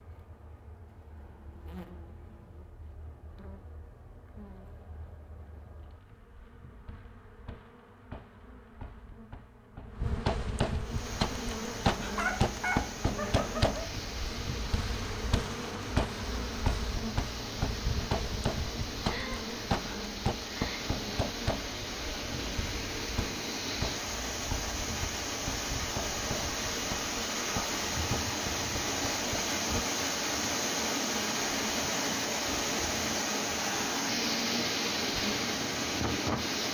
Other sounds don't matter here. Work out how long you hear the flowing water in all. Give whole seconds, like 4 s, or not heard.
26 s.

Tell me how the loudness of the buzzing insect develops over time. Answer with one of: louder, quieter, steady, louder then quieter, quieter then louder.
louder then quieter.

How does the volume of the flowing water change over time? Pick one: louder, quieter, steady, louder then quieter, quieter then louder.
louder.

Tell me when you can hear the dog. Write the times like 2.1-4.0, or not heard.
12.2-13.8.